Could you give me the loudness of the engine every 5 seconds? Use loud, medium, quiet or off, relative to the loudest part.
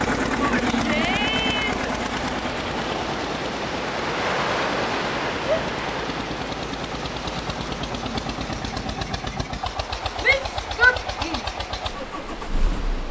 loud, medium, medium.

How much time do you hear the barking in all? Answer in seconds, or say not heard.
not heard.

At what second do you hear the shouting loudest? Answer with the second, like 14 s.
11 s.